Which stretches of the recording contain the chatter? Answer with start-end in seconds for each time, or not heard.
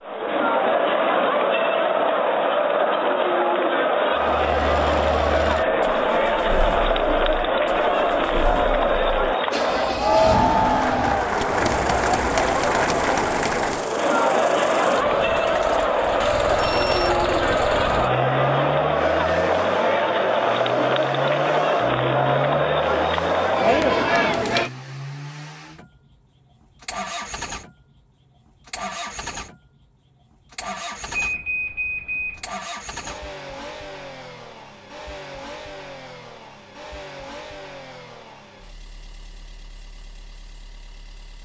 0.0-24.7.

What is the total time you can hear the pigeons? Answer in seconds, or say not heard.
not heard.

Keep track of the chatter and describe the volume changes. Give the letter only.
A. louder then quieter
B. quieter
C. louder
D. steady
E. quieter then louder
D.